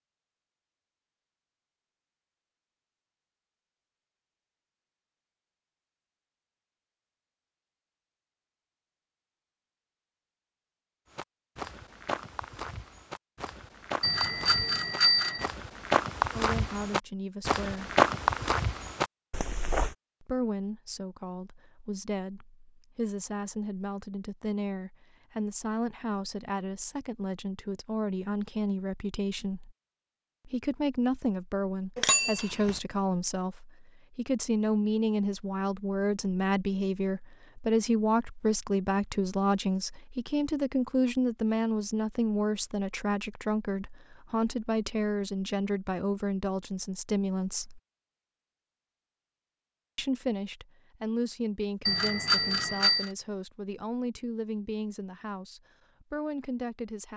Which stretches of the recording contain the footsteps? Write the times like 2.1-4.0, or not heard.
11.2-19.9.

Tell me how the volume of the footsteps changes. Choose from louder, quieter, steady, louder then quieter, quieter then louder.
louder.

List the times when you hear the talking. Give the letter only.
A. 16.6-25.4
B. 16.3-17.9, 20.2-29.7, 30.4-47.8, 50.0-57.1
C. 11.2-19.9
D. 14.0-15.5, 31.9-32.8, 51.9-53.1
B.